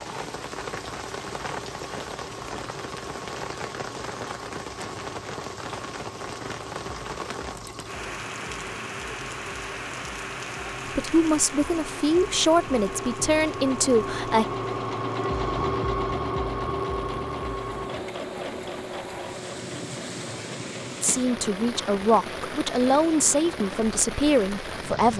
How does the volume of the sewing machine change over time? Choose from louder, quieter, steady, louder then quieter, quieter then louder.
louder then quieter.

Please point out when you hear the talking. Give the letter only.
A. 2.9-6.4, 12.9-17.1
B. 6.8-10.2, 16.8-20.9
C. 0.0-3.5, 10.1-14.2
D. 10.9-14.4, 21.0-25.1
D.